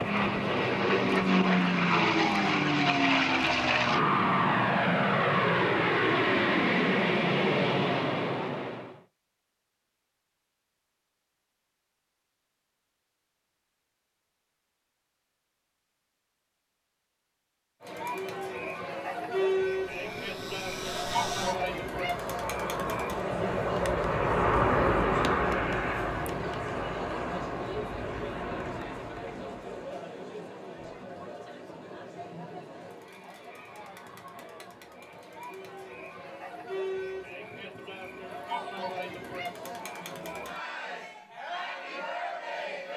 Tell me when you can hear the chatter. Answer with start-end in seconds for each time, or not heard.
17.8-42.9.